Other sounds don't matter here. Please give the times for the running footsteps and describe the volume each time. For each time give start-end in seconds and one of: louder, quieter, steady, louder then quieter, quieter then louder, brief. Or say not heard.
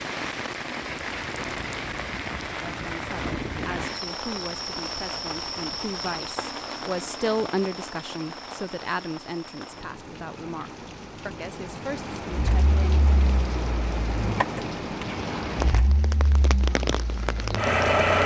not heard.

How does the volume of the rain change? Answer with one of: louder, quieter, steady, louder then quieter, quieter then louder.
quieter then louder.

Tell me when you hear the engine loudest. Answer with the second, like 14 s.
18 s.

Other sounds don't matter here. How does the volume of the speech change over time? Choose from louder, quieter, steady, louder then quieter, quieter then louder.
louder then quieter.